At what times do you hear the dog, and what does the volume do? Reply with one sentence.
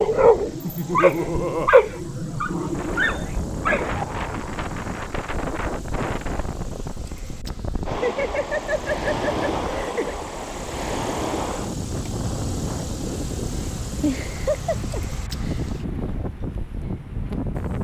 The dog can be heard from 0.0 to 4.0 s, getting louder then quieter.